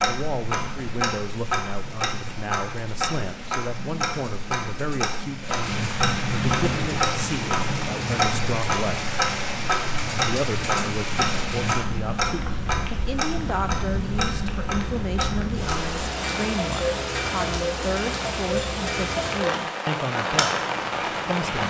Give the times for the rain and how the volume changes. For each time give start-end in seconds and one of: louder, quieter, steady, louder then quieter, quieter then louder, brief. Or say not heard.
0.0-21.6 louder.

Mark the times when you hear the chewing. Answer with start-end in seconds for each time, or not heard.
not heard.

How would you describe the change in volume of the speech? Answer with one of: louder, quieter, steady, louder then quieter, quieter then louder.
steady.